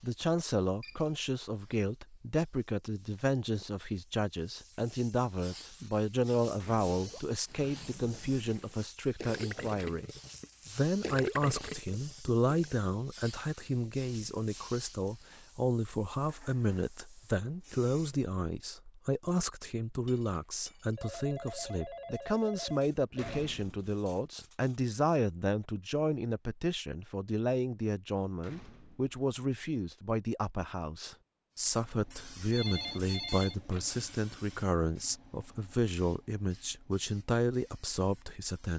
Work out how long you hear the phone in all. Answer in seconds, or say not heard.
5 s.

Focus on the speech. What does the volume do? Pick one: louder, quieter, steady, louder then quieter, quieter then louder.
steady.